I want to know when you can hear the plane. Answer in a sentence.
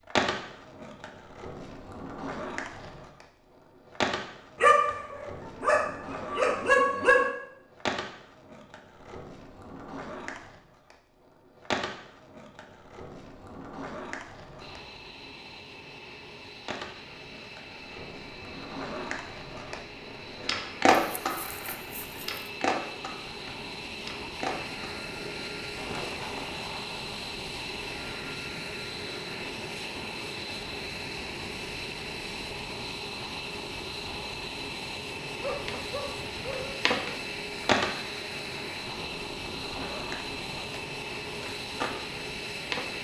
You can hear the plane from 14.6 to 42.9 s.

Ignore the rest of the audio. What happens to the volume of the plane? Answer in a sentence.
The volume of the plane goes up.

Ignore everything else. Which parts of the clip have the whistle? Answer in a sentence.
You can't hear the whistle here.